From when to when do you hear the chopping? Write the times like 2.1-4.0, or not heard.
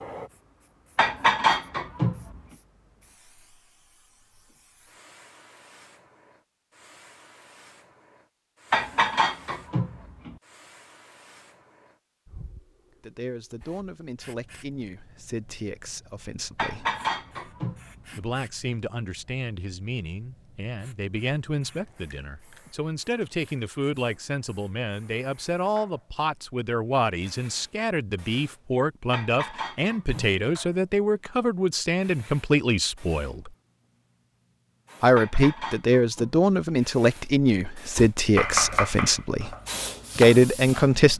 38.0-41.1.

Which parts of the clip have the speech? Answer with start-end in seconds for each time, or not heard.
13.0-16.9, 18.1-33.5, 35.0-39.5, 40.1-41.1.